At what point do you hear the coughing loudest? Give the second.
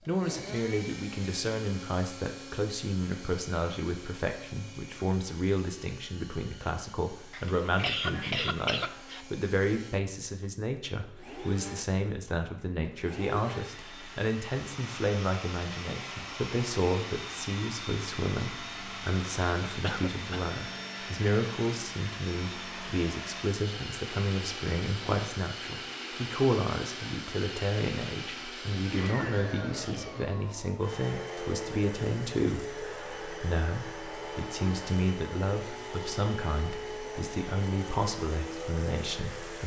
8 s.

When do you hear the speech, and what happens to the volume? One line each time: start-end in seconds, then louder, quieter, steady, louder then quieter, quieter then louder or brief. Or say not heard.
0.1-39.6 steady.